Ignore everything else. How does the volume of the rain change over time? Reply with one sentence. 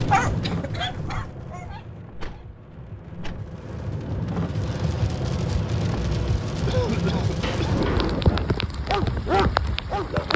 The volume of the rain goes up.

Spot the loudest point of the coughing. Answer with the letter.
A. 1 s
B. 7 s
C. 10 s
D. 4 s
B.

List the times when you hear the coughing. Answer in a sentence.
The coughing can be heard from 0.4 to 1.2 s and from 6.7 to 7.8 s.